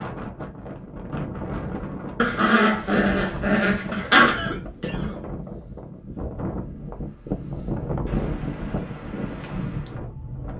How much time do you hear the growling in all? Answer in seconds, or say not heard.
2 s.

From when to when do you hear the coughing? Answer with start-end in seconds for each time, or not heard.
4.2-5.2.